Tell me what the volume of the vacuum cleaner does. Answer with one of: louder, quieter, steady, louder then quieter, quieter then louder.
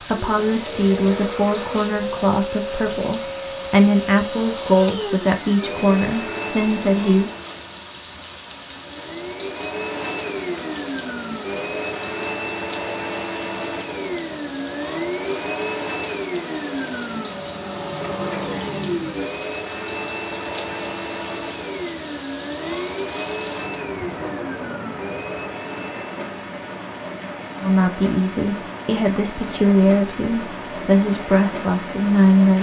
steady.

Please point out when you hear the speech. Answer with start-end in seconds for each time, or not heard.
0.0-7.3, 27.6-32.5.